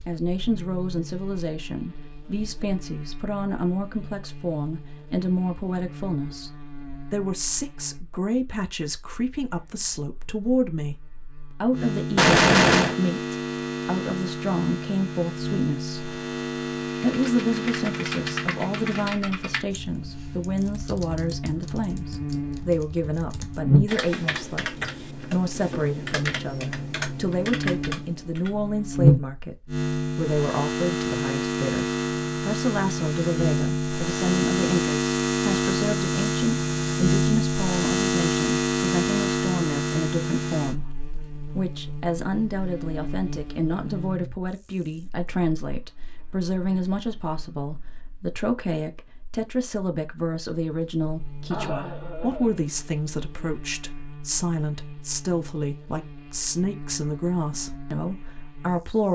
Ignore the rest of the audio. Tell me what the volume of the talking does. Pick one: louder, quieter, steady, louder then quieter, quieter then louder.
steady.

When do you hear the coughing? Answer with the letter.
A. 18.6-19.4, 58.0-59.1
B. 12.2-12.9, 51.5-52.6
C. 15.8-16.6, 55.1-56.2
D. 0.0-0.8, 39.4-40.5
B.